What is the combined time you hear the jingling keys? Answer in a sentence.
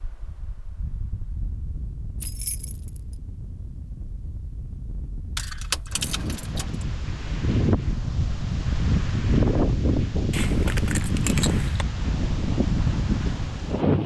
You can hear the jingling keys for 4 seconds altogether.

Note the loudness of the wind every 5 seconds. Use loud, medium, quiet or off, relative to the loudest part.
quiet, loud, loud.